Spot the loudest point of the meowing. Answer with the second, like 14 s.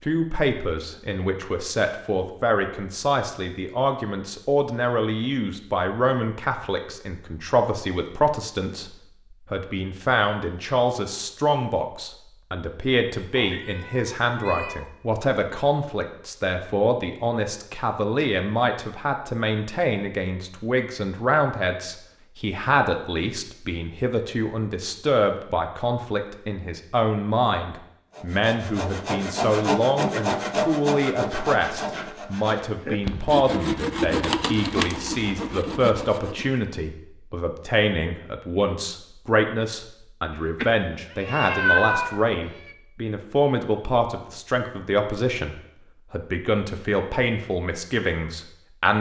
42 s.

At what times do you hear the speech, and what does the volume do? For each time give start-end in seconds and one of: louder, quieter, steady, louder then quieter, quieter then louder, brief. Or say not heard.
0.0-8.9 steady
9.5-48.9 steady.